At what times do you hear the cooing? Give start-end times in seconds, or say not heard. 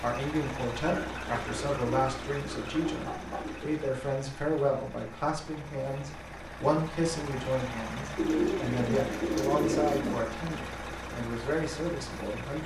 0.8-3.6, 8.2-10.2.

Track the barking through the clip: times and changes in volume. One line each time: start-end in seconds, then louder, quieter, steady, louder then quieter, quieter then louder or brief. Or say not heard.
not heard.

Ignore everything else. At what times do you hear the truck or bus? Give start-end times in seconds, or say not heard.
0.0-12.6.